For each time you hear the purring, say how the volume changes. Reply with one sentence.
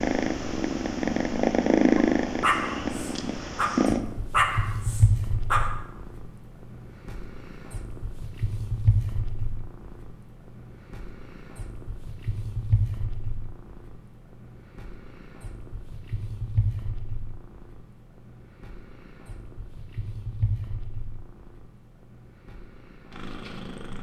The purring can be heard from 0.0 to 23.9 s, getting quieter.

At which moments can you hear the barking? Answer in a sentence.
The barking can be heard from 1.9 to 5.8 s.